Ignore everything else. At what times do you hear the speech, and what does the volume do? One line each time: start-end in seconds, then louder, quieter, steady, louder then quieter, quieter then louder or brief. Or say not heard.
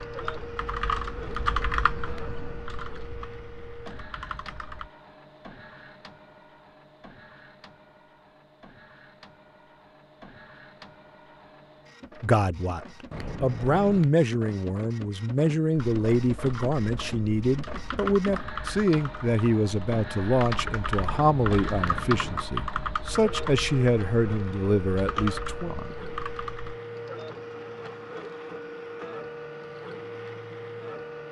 12.2-25.8 steady.